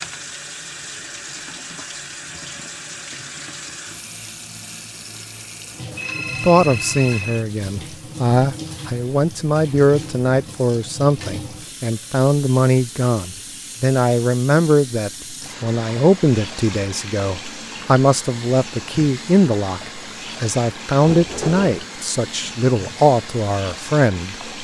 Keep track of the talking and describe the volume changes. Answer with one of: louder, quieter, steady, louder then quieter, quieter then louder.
steady.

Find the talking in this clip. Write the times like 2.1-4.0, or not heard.
6.2-24.5.